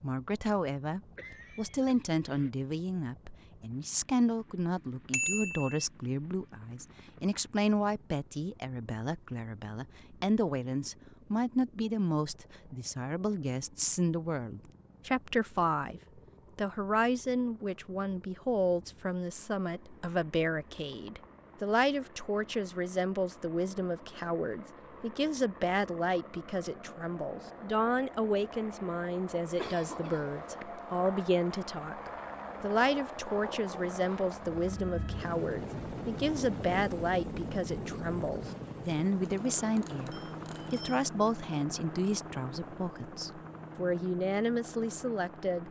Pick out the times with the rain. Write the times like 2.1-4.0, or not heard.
not heard.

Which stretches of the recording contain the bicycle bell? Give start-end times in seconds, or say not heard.
5.1-5.8, 39.2-41.0.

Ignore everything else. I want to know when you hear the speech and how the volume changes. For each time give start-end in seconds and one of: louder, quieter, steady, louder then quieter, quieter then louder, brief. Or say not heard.
0.0-45.6 steady.